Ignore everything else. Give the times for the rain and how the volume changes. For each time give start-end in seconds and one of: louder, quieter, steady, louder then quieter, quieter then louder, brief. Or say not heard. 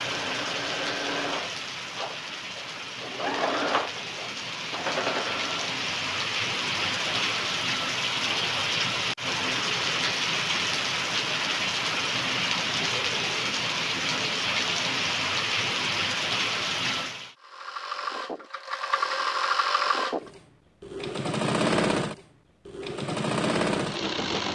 0.0-17.4 louder.